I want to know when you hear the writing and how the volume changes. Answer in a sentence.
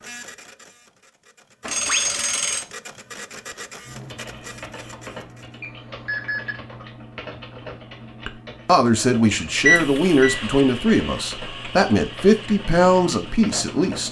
You can't hear the writing here.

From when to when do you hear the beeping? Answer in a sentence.
You can hear the beeping from 1.6 to 2.6 s, from 5.6 to 6.5 s and from 9.7 to 10.4 s.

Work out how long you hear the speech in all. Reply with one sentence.
The speech can be heard for 6 seconds in total.